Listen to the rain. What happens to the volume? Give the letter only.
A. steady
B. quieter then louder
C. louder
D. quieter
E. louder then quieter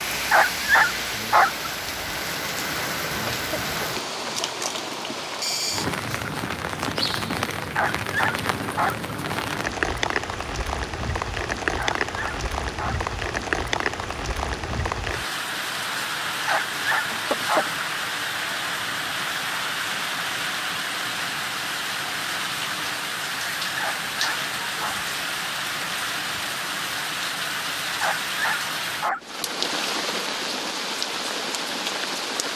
A.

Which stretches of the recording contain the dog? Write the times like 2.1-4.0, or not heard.
0.1-1.7, 7.5-9.1, 11.8-13.0, 16.2-17.7, 23.8-25.0, 27.8-29.4.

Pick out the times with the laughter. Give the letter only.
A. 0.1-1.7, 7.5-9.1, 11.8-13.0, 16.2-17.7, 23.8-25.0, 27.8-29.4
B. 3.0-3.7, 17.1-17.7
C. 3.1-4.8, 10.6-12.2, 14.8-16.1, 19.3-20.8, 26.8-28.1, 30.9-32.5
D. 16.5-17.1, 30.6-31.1
B.